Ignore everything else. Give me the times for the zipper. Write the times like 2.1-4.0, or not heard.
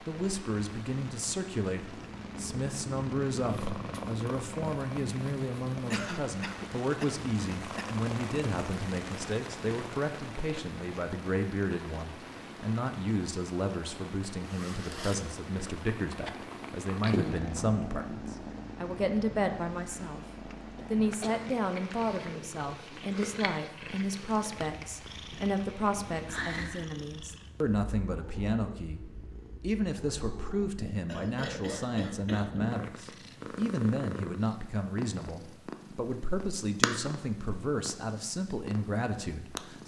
14.4-15.3.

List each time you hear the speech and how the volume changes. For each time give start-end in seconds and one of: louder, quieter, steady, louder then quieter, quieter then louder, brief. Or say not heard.
0.1-20.2 steady
20.9-39.8 steady.